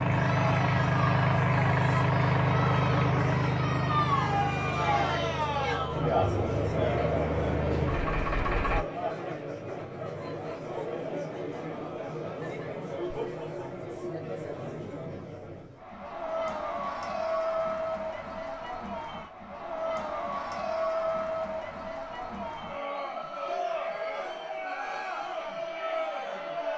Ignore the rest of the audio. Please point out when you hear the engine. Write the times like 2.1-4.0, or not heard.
0.0-8.8.